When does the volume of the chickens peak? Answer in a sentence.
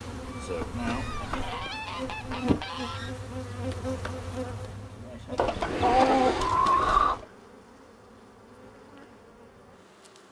The volume of the chickens peaks at 6 seconds.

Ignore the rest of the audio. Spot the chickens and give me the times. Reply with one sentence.
You can hear the chickens from 0.2 to 3.1 s and from 5.3 to 7.2 s.